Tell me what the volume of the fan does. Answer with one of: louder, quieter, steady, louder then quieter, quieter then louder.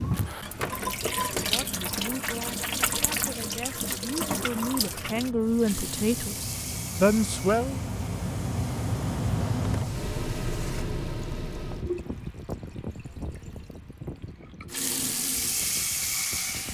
louder then quieter.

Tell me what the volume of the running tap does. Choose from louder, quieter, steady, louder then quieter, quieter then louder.
quieter then louder.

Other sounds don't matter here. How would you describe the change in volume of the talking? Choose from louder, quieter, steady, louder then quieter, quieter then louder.
louder.